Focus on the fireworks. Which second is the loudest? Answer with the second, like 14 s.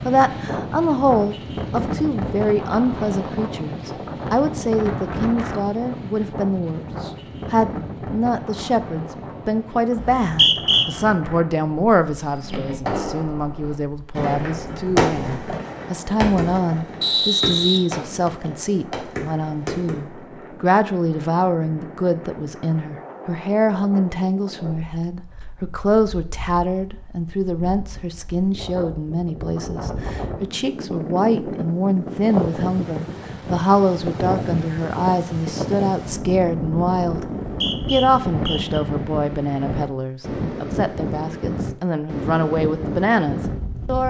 15 s.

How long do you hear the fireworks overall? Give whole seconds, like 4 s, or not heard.
8 s.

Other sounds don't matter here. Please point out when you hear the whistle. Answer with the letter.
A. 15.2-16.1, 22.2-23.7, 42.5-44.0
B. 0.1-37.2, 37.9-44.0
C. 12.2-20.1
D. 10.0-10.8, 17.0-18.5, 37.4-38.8
D.